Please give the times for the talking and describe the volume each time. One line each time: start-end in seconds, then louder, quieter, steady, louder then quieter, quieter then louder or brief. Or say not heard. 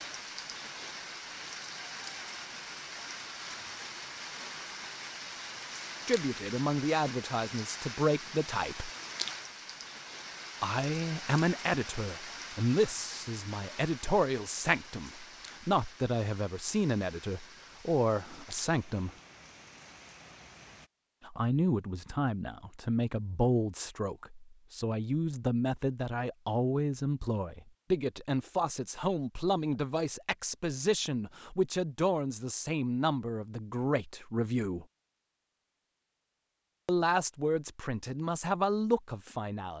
6.0-8.9 brief
10.6-19.1 steady
21.2-34.9 steady
36.9-39.7 brief.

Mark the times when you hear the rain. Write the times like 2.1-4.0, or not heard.
0.0-20.9.